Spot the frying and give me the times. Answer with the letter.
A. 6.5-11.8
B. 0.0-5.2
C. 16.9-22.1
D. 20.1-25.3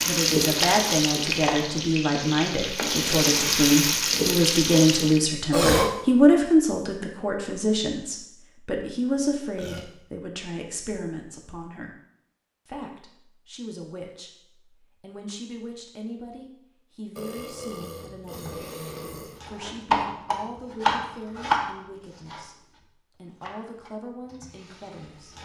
B.